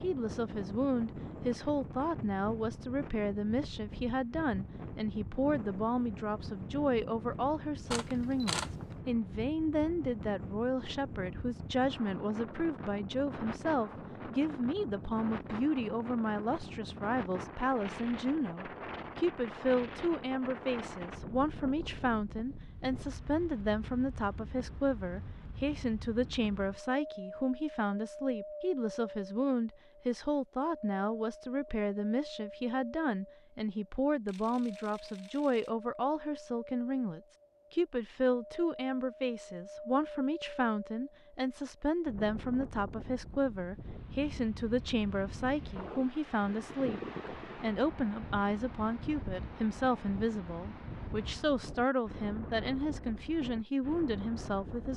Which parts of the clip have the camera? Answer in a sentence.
The camera can be heard from 7.9 to 8.9 s and from 34.2 to 35.7 s.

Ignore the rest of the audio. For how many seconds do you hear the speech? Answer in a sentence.
The speech can be heard for 55 seconds in total.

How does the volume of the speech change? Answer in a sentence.
The loudness of the speech stays about the same.